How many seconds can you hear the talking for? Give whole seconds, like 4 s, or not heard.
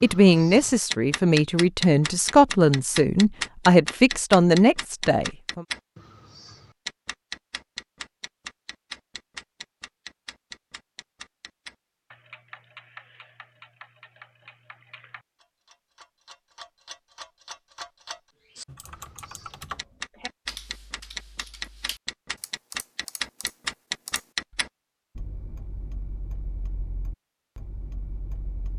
6 s.